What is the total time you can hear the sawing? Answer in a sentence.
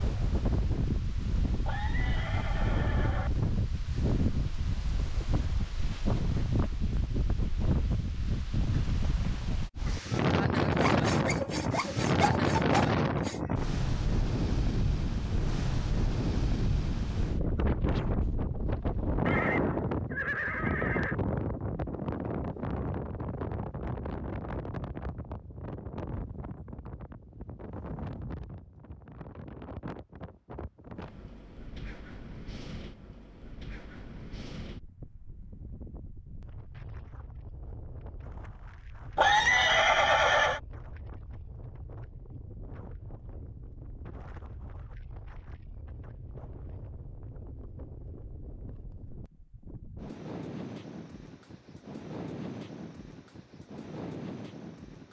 You can hear the sawing for 3 seconds altogether.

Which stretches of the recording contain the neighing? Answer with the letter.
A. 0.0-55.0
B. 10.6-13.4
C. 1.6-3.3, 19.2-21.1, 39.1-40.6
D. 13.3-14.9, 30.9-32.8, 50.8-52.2
C.